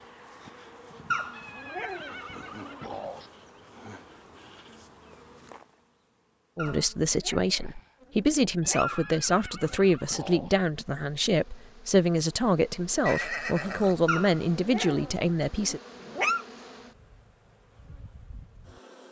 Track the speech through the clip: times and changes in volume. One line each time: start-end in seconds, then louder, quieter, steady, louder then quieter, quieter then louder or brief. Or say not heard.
6.5-15.8 steady.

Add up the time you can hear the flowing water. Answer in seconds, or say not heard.
not heard.